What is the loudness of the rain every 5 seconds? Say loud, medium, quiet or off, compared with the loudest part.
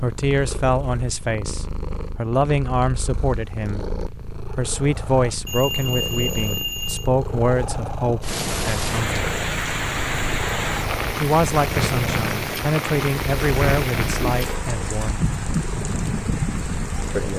off, loud, loud, loud.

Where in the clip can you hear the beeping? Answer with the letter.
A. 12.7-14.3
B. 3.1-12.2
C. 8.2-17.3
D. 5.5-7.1
D.